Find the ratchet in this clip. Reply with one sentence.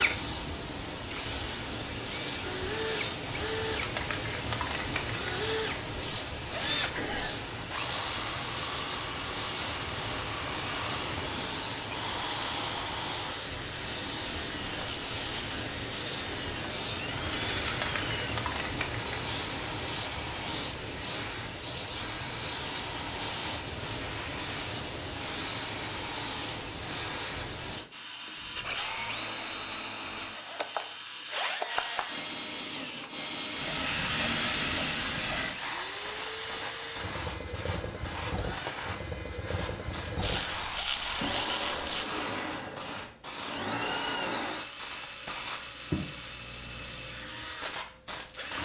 You can hear the ratchet from 14.2 to 15.7 s and from 40.1 to 42.0 s.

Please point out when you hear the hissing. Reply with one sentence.
The hissing can be heard from 0.0 to 48.6 s.